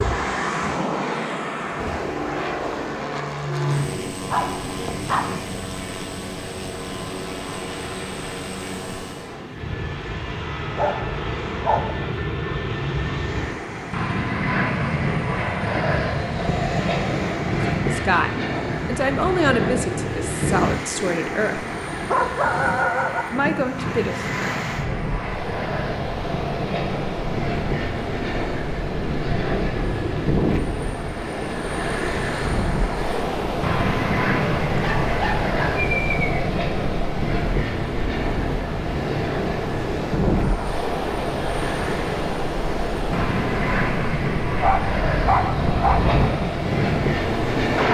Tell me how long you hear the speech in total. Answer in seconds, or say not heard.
5 s.